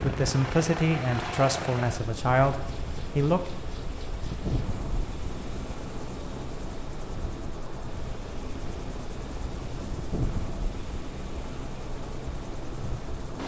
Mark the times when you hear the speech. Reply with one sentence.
You can hear the speech from 0.0 to 3.5 s.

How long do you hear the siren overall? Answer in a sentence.
You can't hear the siren here.